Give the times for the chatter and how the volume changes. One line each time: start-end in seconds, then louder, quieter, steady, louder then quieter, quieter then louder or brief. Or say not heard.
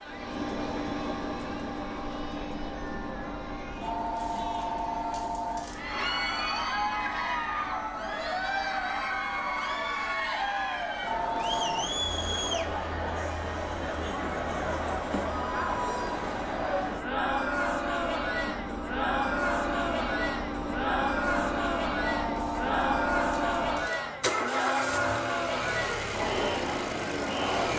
0.0-27.7 louder.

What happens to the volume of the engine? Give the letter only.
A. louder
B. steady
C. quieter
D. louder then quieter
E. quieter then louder
E.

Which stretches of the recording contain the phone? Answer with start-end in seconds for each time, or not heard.
3.8-5.8, 11.0-11.8, 22.1-23.9.